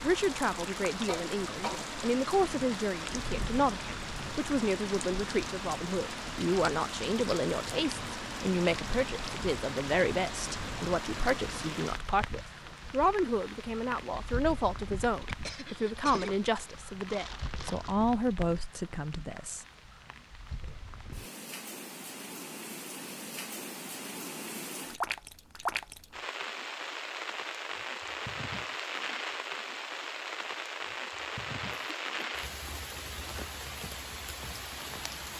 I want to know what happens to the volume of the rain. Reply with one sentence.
The loudness of the rain goes down, then up.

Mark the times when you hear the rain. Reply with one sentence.
The rain can be heard from 0.0 to 35.3 s.